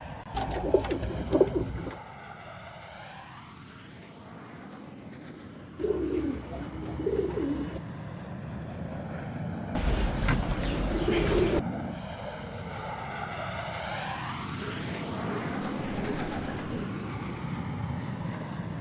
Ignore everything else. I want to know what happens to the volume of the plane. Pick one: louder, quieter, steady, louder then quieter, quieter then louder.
louder.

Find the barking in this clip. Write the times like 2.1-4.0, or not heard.
not heard.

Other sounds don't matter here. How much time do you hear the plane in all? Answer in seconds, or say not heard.
19 s.